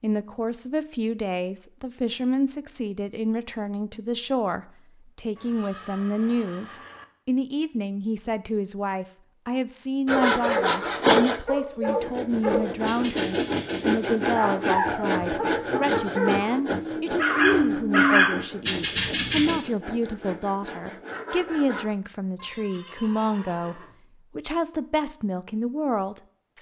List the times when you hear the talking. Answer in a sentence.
You can hear the talking from 0.0 to 26.5 s.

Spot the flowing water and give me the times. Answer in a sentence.
The flowing water can't be heard in this clip.